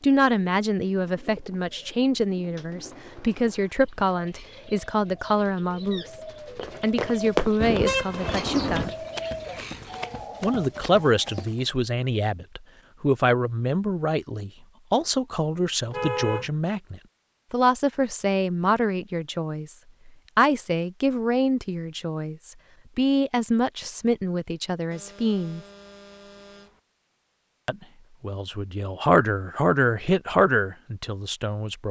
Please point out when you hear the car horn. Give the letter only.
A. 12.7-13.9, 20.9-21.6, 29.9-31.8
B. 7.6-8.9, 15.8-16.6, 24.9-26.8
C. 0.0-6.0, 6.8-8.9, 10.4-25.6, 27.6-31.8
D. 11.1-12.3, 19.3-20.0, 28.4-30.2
B.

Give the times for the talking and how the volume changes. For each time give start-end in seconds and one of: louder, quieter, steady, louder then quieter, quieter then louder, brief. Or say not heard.
0.0-6.0 steady
6.8-8.9 brief
10.4-25.6 steady
27.6-31.8 louder then quieter.